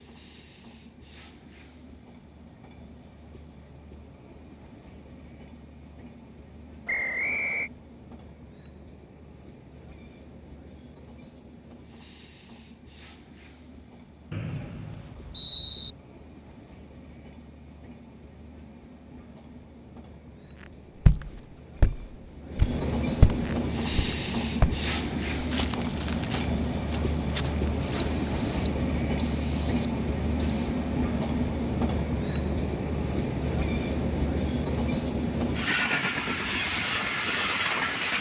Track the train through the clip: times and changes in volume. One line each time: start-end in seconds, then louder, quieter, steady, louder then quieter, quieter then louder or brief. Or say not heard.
0.0-38.1 louder.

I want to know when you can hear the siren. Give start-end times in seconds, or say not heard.
not heard.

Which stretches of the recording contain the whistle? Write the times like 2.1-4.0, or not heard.
6.8-7.7, 14.3-15.9, 27.9-30.8.